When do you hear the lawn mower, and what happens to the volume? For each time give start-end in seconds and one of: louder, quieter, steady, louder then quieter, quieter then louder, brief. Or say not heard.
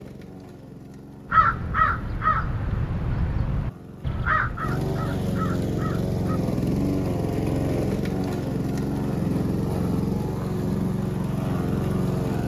0.0-12.4 louder.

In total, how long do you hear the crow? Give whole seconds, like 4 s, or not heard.
5 s.